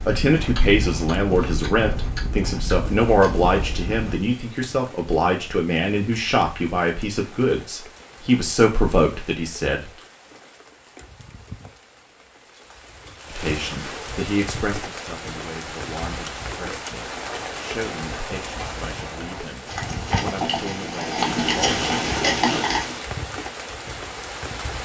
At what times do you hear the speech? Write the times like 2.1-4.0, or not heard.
0.1-9.9, 13.3-21.9.